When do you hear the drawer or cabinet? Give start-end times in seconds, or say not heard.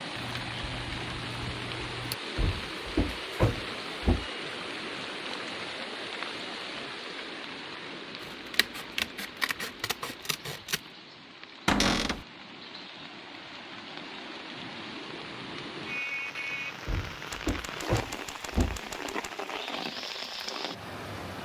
2.4-4.2, 11.7-12.2, 16.9-18.8.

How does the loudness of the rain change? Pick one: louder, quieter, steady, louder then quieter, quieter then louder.
quieter then louder.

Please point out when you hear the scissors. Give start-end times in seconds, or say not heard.
0.1-2.1, 8.5-10.8, 17.3-19.3.